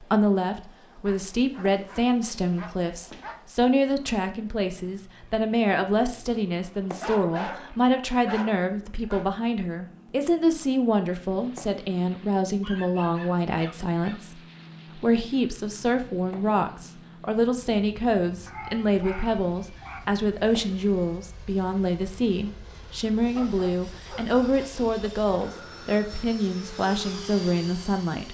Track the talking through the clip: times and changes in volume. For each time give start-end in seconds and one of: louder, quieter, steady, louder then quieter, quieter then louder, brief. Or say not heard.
0.0-28.3 steady.